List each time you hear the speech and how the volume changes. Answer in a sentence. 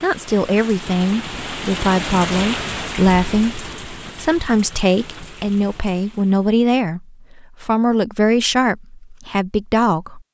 The speech can be heard from 0.0 to 10.2 s, at a steady volume.